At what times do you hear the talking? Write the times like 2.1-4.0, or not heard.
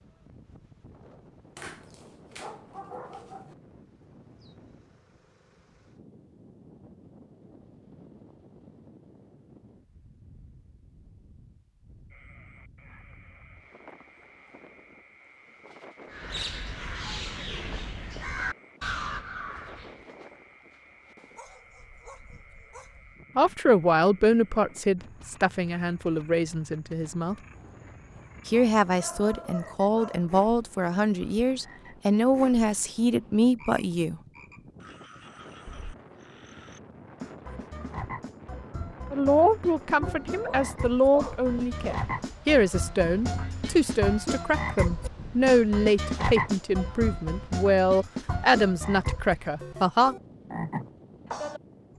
23.4-27.4, 28.4-34.2, 39.1-50.1.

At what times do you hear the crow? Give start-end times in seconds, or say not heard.
16.1-20.1.